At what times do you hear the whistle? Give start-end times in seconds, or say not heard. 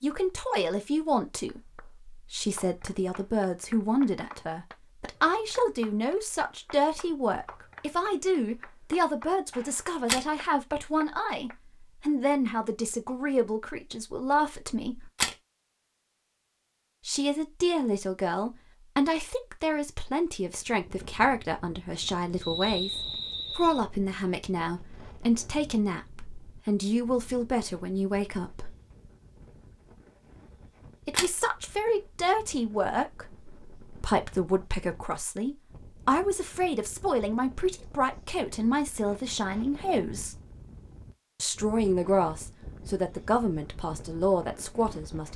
22.4-23.8.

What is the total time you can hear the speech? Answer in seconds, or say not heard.
40 s.